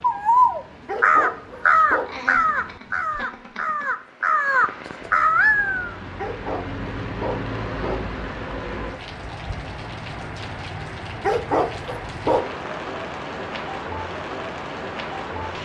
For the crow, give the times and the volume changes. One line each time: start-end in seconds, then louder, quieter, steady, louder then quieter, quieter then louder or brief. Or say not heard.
0.0-6.0 quieter then louder.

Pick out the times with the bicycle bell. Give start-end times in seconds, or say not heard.
not heard.